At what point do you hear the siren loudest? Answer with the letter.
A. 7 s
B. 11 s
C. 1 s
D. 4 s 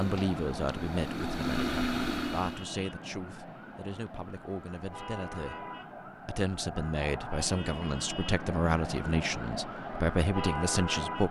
B.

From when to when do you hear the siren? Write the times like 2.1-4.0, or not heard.
0.0-11.2.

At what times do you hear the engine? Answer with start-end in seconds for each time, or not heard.
0.0-2.7.